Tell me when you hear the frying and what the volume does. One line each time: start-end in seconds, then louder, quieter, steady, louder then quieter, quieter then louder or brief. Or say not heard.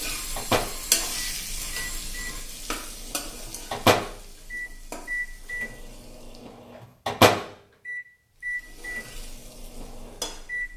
0.0-6.5 quieter
8.4-10.7 brief.